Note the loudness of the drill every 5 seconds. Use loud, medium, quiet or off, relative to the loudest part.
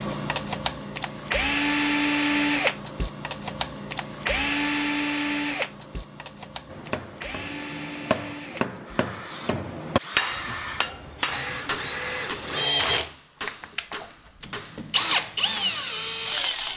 loud, medium, medium, loud.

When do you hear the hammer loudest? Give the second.
10 s.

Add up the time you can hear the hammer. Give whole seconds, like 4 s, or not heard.
9 s.